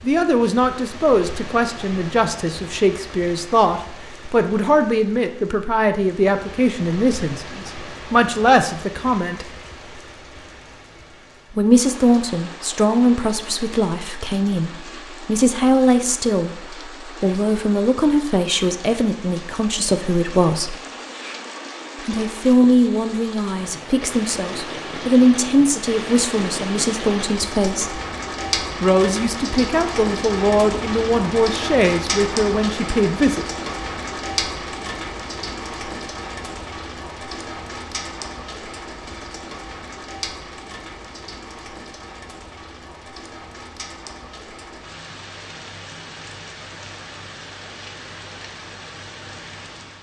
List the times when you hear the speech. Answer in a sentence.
The speech can be heard from 0.0 to 9.4 s, from 11.5 to 20.8 s, from 22.1 to 28.0 s and from 28.8 to 33.5 s.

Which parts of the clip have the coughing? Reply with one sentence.
The coughing can't be heard in this clip.